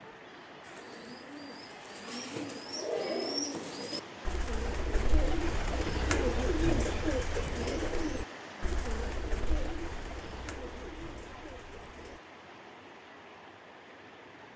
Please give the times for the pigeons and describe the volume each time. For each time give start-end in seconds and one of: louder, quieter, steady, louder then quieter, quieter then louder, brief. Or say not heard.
0.6-12.2 louder then quieter.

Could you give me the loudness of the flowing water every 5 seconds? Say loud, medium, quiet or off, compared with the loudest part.
loud, loud, medium.